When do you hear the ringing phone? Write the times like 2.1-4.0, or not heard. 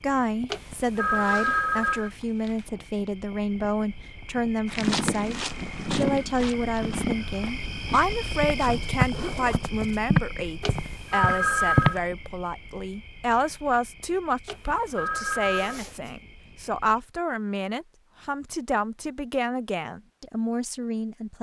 0.5-2.1, 10.6-12.0, 14.4-15.8.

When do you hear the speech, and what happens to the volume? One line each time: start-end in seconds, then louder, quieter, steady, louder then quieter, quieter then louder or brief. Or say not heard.
0.0-21.3 steady.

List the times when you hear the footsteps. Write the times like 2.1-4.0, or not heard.
4.7-12.0.